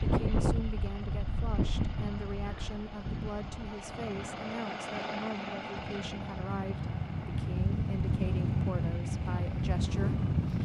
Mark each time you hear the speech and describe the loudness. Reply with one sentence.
The speech can be heard from 0.0 to 10.6 s, at a steady volume.